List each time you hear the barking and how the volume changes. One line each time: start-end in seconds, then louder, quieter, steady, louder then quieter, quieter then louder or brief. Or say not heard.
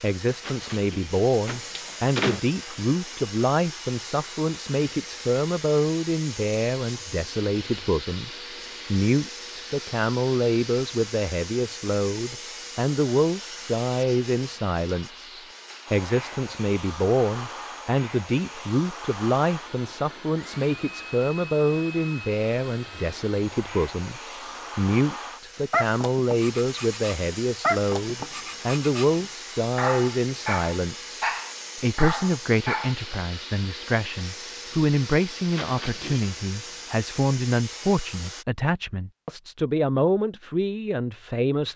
25.7-33.0 louder.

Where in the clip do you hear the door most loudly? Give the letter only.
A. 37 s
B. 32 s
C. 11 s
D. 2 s
D.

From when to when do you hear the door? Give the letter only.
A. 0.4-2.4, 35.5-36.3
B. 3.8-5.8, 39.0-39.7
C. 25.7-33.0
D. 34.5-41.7
A.